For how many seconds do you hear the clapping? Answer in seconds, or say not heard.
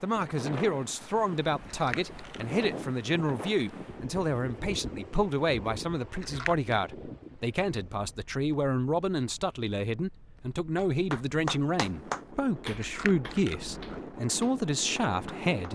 5 s.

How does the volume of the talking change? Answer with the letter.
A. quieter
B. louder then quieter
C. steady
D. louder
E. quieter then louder
C.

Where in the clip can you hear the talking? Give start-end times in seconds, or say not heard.
0.0-15.7.